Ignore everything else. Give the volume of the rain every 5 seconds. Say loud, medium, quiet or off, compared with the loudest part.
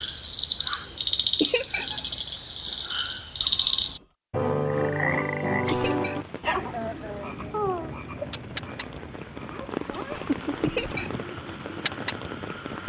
off, medium, loud.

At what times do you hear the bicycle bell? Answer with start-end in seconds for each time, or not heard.
3.4-4.0, 9.9-11.1.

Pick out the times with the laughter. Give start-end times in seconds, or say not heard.
1.4-1.9, 5.7-6.2, 10.6-11.2.